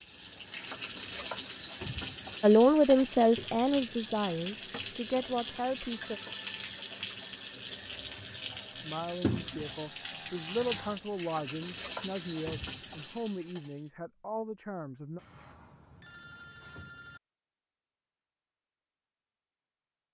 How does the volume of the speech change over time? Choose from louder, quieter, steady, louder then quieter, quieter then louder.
quieter.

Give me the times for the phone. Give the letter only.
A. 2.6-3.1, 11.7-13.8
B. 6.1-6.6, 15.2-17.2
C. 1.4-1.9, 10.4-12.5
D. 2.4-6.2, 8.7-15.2
B.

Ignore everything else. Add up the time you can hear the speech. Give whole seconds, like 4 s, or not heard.
10 s.